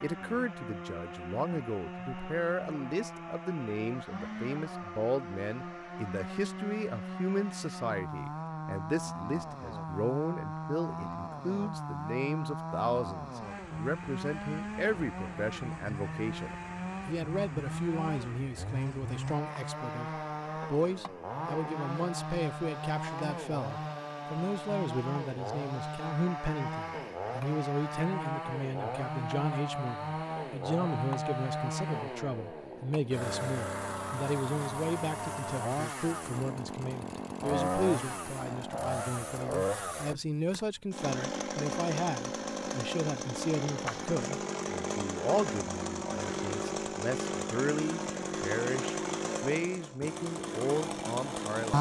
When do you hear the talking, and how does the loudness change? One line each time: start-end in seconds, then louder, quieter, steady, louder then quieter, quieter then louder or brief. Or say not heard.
0.0-51.7 steady.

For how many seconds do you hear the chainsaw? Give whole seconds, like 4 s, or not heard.
52 s.